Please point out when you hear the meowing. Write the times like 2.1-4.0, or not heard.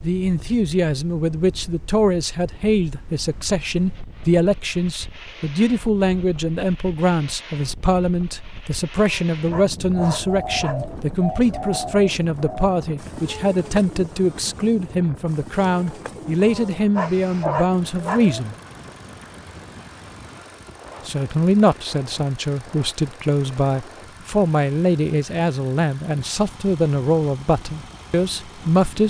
not heard.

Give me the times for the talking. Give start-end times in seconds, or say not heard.
0.0-18.6, 21.1-29.0.